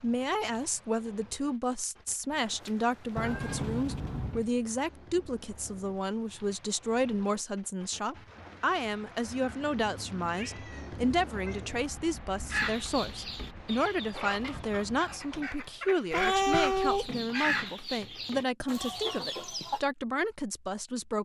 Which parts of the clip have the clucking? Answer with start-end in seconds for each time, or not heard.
12.5-19.8.